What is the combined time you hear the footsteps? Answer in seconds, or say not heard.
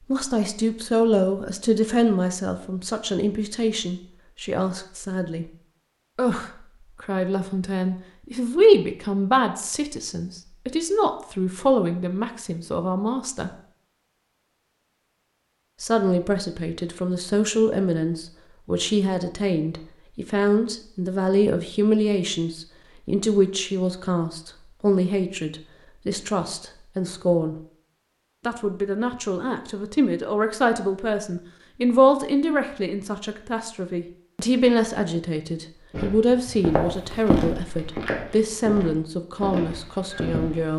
5 s.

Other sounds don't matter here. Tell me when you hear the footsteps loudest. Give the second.
37 s.